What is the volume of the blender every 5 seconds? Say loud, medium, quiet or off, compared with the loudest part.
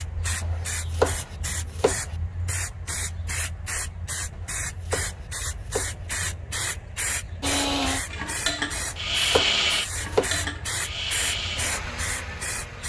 off, loud, medium.